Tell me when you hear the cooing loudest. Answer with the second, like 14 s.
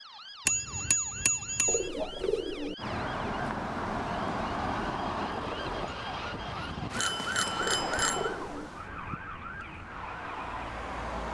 2 s.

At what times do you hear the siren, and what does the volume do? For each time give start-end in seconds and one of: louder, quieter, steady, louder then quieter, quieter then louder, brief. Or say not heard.
0.0-11.3 louder then quieter.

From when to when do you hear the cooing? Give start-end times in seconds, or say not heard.
1.6-2.8, 7.6-8.7.